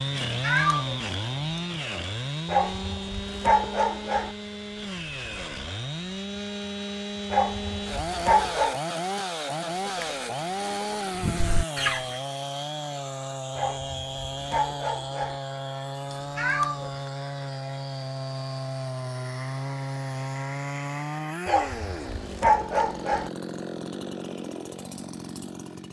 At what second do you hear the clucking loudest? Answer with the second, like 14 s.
12 s.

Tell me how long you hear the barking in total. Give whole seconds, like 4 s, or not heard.
7 s.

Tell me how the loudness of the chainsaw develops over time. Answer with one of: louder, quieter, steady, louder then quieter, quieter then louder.
steady.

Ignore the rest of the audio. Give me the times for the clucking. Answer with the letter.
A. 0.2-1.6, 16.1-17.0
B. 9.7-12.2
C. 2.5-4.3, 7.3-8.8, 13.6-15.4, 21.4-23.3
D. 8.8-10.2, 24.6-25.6
B.